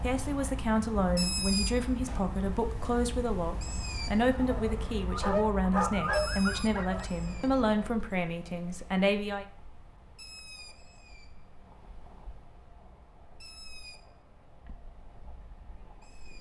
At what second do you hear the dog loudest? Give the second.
6 s.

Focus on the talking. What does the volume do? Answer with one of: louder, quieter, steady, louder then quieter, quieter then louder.
steady.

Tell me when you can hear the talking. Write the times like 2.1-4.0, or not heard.
0.0-9.4.